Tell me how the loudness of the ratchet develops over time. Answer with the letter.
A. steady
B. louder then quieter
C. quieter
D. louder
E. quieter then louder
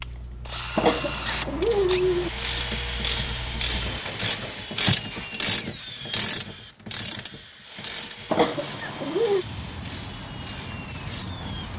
B.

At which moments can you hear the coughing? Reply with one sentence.
The coughing can be heard from 0.8 to 2.3 s and from 8.3 to 9.4 s.